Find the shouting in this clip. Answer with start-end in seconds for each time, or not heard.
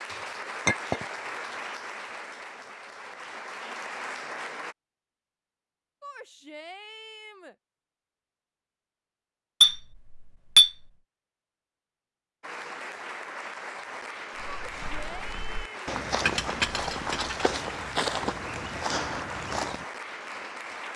6.0-7.5, 14.4-15.8.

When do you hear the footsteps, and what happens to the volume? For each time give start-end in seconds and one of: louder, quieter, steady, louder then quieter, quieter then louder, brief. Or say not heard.
14.3-19.9 louder.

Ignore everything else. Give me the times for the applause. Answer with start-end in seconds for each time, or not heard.
0.0-4.8, 12.4-20.9.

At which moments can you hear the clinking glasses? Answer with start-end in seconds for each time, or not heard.
0.7-1.1, 9.6-10.7, 16.2-17.4.